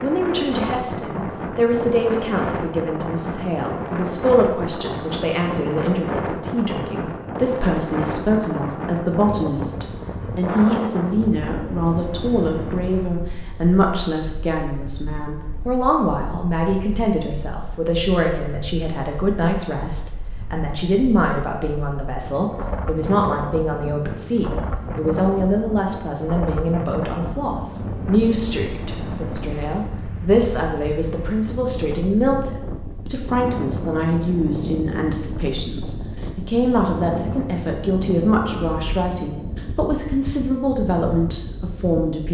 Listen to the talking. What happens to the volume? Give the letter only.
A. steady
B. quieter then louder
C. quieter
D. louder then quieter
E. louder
A.